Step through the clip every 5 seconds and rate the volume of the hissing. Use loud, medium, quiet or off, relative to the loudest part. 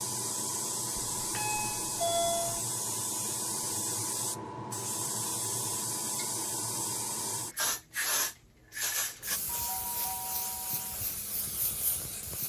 loud, loud, medium.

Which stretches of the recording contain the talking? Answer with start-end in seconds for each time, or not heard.
not heard.